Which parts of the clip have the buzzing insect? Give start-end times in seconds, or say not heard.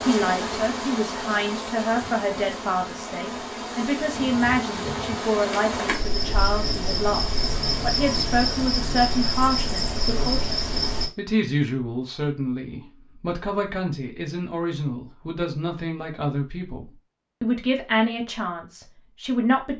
0.0-11.1.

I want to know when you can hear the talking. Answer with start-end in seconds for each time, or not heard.
0.0-19.7.